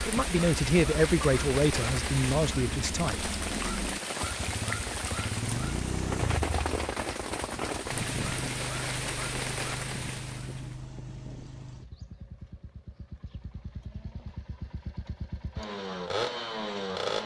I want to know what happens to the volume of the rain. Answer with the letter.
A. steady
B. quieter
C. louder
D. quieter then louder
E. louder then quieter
A.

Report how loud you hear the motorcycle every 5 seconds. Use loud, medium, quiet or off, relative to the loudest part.
medium, loud, medium, loud.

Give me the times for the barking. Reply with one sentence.
You can't hear the barking here.